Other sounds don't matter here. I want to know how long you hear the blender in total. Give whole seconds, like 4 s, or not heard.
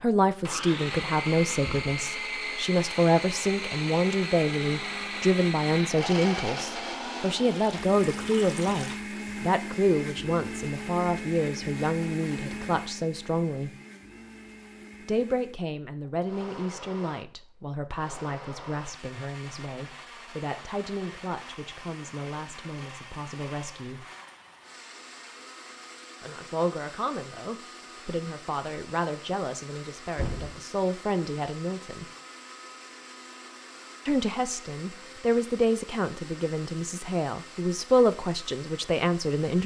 39 s.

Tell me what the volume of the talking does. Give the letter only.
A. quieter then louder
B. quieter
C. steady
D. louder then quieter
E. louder
A.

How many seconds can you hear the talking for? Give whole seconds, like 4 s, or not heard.
34 s.